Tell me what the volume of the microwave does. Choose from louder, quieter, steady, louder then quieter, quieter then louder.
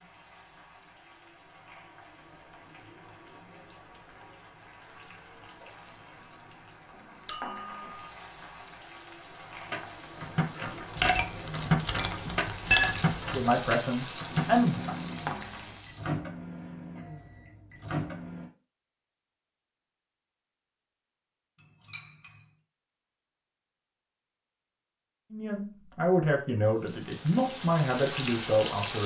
louder then quieter.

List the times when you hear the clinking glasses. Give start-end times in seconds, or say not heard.
7.2-7.8, 10.9-13.4, 21.9-22.3.